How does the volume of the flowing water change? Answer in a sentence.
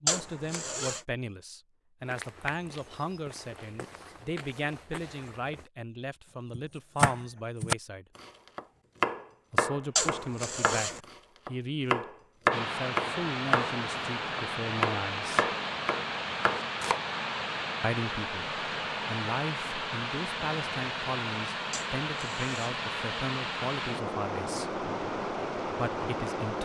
The volume of the flowing water stays about the same.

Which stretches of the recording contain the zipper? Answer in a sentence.
You can hear the zipper from 0.1 to 1.0 s, from 9.9 to 11.0 s and from 21.7 to 22.8 s.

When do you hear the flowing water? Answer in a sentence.
The flowing water can be heard from 12.5 to 26.6 s.